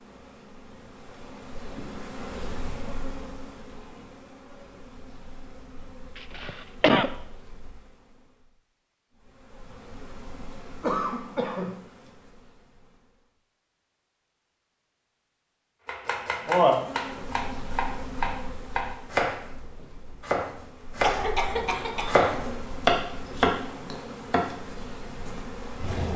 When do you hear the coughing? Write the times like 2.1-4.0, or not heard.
6.2-7.1, 10.8-11.8, 21.0-22.6.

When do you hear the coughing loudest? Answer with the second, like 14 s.
7 s.